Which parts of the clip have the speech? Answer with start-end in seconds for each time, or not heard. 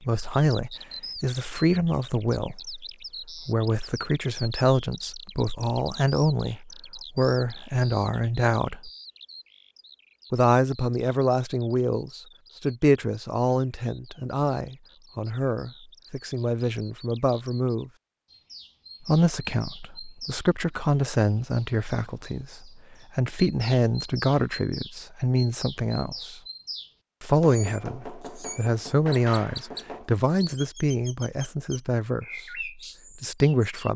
0.0-2.8, 3.5-8.9, 10.3-17.9, 19.1-26.4, 27.2-33.9.